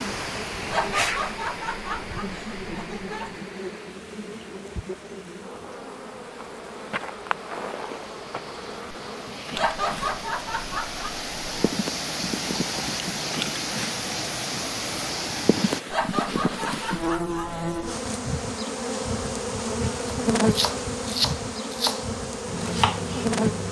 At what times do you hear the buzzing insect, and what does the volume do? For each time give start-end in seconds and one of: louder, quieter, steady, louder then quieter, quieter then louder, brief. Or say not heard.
0.0-23.6 louder.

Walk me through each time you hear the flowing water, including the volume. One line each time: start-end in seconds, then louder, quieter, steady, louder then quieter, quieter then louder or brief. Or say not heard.
0.0-15.8 quieter then louder.